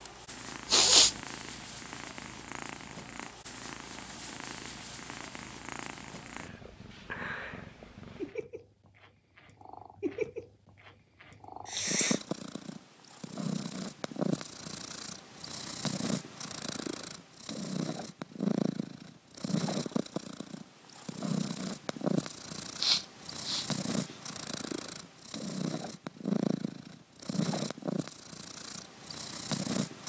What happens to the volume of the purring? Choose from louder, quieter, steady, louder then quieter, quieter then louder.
louder.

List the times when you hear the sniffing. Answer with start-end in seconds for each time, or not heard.
0.7-1.1, 11.7-12.2, 22.8-23.6.